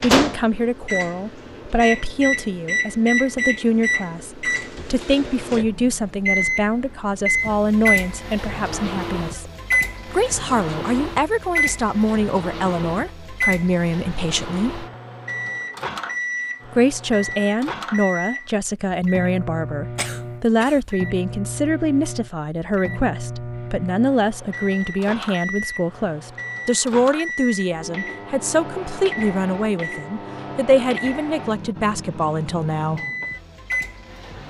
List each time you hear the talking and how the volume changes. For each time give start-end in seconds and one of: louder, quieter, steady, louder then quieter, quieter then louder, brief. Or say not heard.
0.0-14.8 steady
16.7-33.0 steady.